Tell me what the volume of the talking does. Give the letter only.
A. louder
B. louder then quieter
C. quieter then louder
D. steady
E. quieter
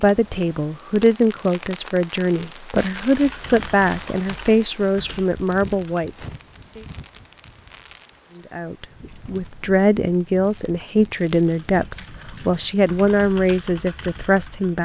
D.